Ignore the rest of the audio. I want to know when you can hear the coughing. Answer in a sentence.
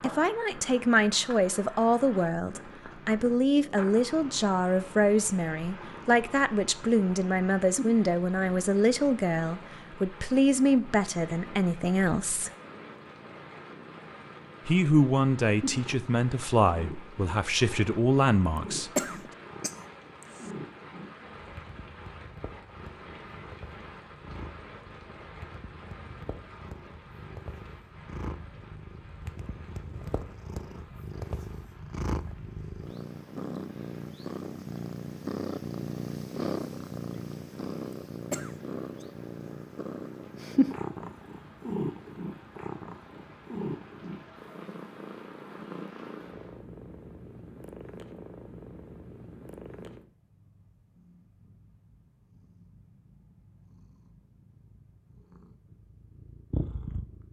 The coughing can be heard from 18.9 to 20.5 s and from 38.3 to 39.0 s.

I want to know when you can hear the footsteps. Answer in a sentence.
The footsteps can't be heard in this clip.